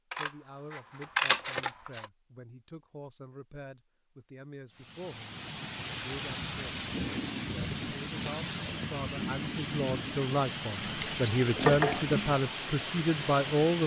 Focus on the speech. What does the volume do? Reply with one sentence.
The volume of the speech goes up.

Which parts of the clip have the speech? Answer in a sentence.
You can hear the speech from 0.1 to 6.8 s and from 7.8 to 13.8 s.